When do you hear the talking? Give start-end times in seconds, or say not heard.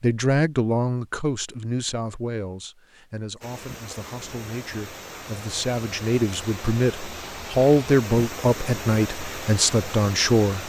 0.0-10.6.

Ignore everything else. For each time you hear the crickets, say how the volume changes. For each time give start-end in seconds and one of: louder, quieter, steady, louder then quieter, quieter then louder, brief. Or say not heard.
not heard.